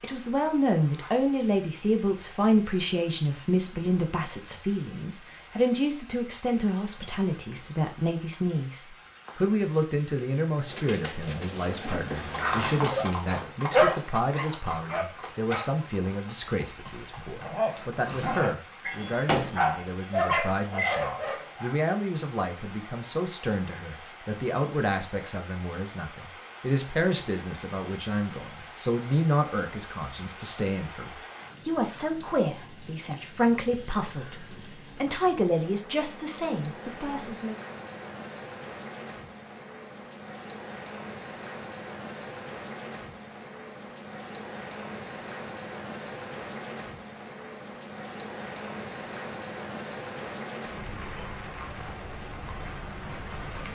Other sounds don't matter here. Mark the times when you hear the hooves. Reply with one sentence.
The hooves can be heard from 10.7 to 18.1 s.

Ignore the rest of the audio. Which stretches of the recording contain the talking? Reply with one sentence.
The talking can be heard from 0.0 to 37.5 s.